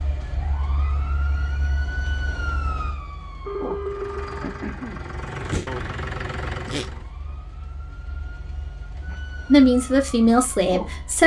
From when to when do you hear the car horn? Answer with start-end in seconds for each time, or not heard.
3.5-4.7.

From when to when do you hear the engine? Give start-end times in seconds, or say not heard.
3.8-7.1.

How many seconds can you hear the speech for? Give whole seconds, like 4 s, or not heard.
2 s.